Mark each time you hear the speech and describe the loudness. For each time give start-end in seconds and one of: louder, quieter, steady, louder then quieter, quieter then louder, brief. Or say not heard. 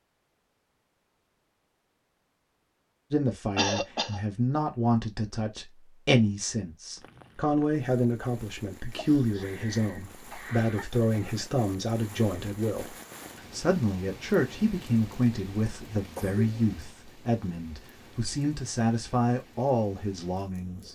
3.1-20.8 steady.